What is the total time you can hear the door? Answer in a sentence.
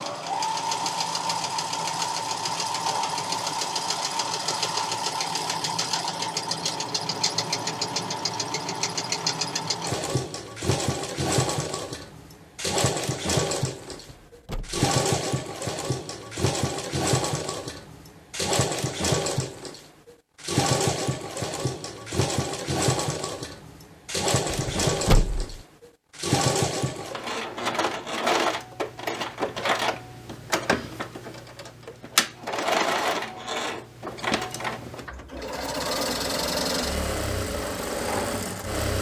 The door can be heard for 2 seconds in total.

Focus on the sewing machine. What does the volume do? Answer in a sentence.
The loudness of the sewing machine stays about the same.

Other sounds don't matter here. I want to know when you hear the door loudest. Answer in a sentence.
The loudest moment of the door is at 25 seconds.